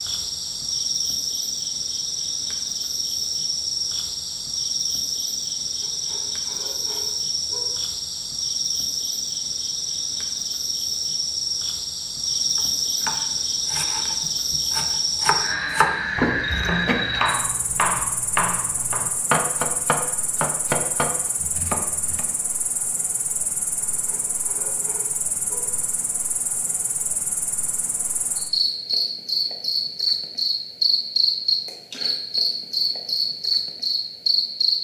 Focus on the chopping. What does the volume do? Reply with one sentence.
The volume of the chopping goes up.